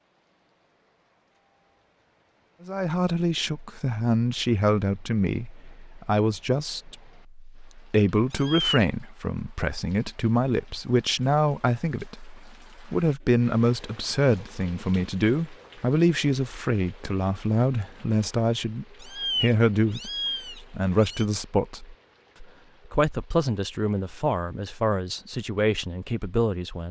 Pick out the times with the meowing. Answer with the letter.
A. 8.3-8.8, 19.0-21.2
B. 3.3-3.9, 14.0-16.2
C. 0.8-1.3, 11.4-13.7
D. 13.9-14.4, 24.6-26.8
A.